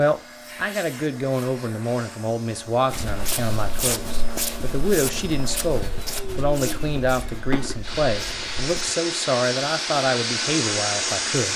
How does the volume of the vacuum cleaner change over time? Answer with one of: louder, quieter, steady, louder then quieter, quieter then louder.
louder.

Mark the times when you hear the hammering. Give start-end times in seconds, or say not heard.
not heard.